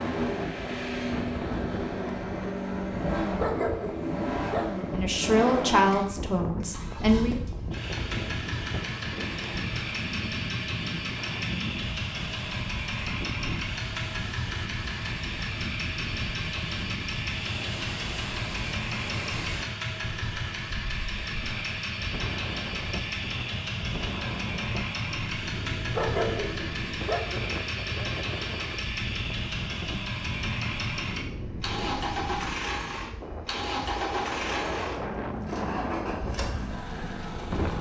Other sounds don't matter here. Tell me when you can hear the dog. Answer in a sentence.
You can hear the dog from 3.4 to 5.0 s and from 25.9 to 27.5 s.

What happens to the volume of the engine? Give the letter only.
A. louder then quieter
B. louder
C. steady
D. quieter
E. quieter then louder
C.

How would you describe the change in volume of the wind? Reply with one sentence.
The volume of the wind stays about the same.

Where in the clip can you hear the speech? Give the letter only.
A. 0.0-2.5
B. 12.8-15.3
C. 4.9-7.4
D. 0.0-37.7
C.